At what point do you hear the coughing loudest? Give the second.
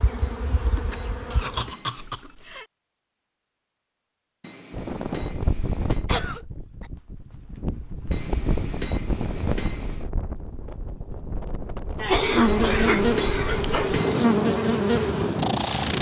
12 s.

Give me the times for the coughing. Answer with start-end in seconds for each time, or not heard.
1.3-2.6, 6.0-6.8, 12.0-13.9.